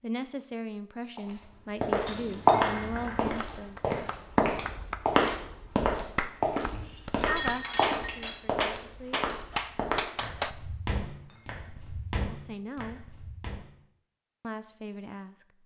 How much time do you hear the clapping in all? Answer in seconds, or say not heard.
8 s.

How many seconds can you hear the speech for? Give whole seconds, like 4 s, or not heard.
8 s.